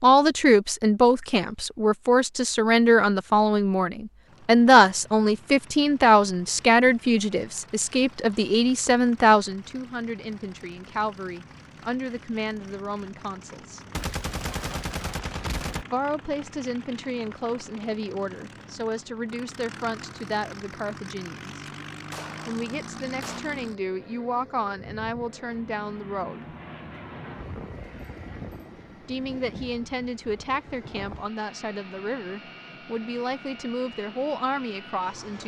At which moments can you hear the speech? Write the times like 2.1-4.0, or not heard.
0.0-13.8, 15.9-21.6, 22.4-26.4, 29.1-35.4.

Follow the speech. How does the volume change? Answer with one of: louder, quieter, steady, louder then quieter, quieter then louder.
quieter.